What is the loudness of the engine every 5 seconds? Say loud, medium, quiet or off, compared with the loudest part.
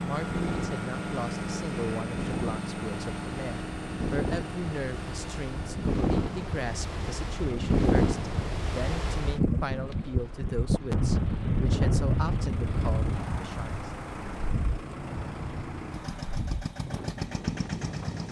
loud, medium, medium, loud.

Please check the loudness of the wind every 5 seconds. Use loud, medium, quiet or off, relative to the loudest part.
medium, loud, loud, medium.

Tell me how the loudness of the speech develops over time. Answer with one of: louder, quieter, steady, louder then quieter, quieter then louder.
steady.